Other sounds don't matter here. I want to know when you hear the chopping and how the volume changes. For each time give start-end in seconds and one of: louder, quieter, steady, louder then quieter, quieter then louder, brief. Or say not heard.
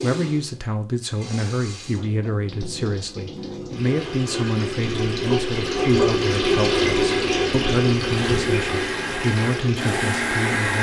not heard.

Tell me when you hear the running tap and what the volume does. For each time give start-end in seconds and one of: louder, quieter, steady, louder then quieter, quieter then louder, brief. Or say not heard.
0.0-10.5 louder then quieter.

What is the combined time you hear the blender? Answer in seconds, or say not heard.
3 s.